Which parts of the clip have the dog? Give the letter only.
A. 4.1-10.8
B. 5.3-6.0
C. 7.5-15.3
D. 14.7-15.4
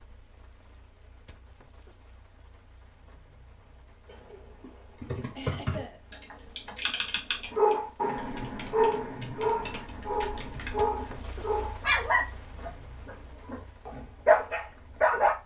C.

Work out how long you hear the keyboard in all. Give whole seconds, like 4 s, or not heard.
7 s.